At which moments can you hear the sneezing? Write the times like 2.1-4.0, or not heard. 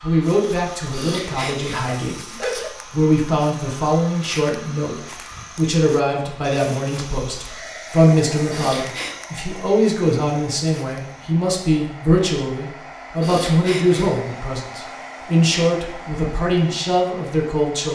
0.9-2.7, 8.5-9.2, 13.2-14.3.